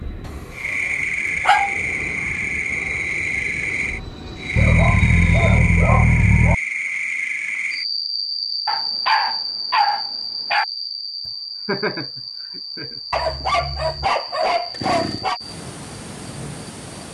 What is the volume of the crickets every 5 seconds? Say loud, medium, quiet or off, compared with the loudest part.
loud, loud, medium, medium.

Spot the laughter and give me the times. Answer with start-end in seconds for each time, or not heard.
11.2-13.4.